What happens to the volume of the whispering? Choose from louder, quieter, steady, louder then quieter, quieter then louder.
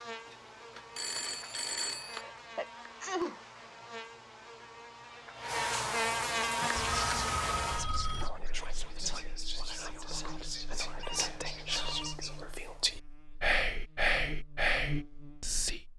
louder.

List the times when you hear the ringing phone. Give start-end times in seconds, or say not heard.
0.3-2.2, 6.8-8.3, 11.0-12.3.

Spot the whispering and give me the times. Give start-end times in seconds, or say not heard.
6.4-15.8.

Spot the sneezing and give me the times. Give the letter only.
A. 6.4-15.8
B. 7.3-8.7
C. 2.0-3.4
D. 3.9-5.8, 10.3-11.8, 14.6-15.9
C.